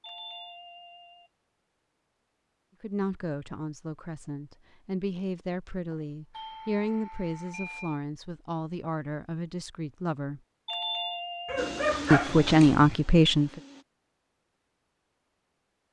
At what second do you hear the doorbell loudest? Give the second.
11 s.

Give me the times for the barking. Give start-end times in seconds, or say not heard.
11.4-12.9.